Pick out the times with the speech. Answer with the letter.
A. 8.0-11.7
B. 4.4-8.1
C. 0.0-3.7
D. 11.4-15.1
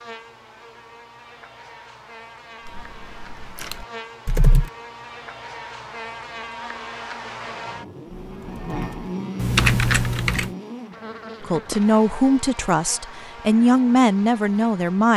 D.